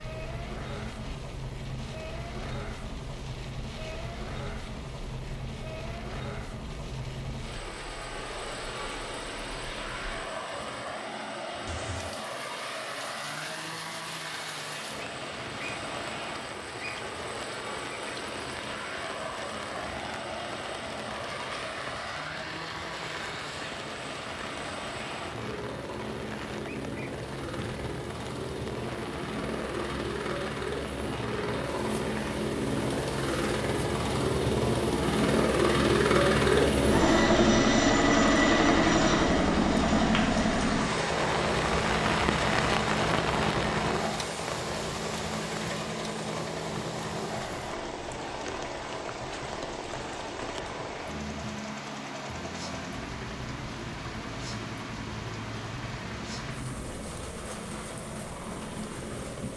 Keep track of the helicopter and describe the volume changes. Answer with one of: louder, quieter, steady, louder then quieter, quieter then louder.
louder then quieter.